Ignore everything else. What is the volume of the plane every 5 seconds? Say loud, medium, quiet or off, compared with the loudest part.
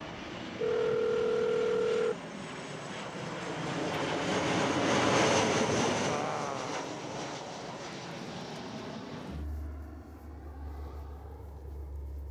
loud, loud, quiet.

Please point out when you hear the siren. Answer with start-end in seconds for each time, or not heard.
not heard.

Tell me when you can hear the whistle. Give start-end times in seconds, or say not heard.
not heard.